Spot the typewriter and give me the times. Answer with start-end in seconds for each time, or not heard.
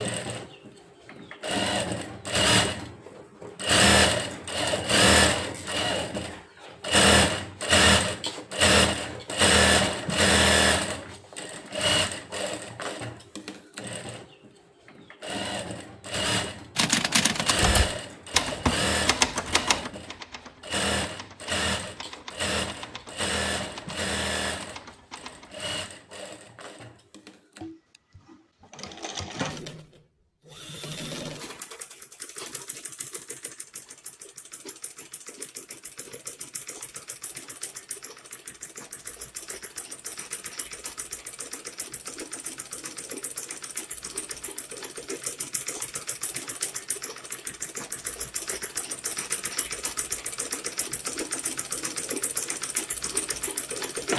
16.8-25.6.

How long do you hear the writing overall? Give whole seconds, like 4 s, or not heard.
not heard.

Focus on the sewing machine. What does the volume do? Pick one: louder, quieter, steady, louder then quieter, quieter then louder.
quieter then louder.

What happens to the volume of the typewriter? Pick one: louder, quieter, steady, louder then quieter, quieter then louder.
quieter.